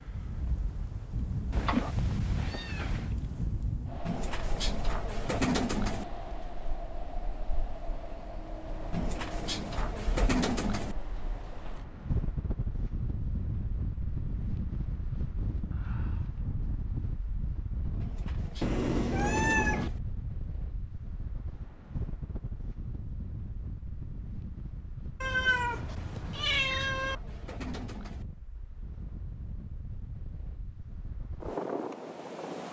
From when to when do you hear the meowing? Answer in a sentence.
The meowing can be heard from 1.5 to 3.1 s, from 18.6 to 19.9 s and from 25.2 to 27.1 s.